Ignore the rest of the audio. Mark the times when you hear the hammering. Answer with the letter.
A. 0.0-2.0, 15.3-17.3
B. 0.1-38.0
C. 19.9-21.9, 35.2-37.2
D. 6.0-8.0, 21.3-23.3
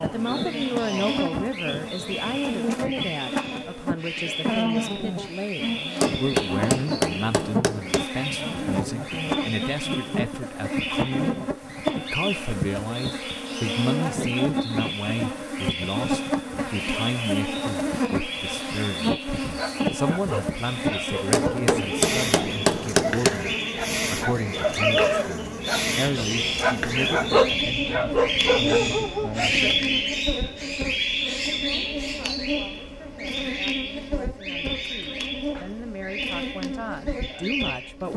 D.